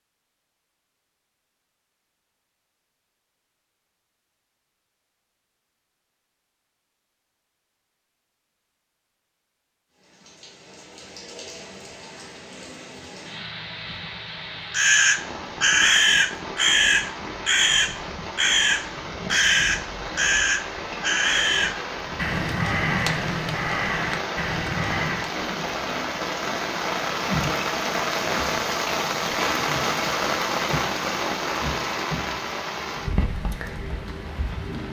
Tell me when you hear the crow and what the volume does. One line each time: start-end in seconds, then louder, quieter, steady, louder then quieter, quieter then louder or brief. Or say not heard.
14.7-25.3 quieter.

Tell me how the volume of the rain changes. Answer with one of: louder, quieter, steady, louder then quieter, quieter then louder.
louder.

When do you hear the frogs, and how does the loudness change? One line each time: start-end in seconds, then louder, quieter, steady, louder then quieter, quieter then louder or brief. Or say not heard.
not heard.